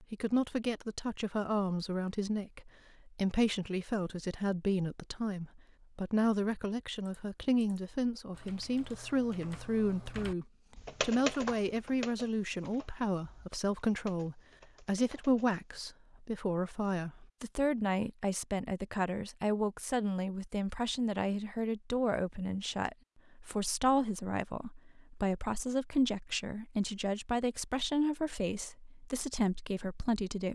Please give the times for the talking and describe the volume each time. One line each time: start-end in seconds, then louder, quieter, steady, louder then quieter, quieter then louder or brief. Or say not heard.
0.0-30.5 steady.